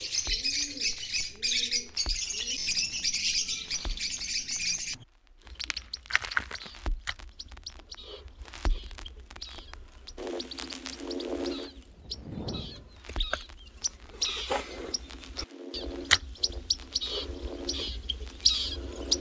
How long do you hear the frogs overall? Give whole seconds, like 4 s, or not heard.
not heard.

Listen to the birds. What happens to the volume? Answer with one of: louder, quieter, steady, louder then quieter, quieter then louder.
quieter then louder.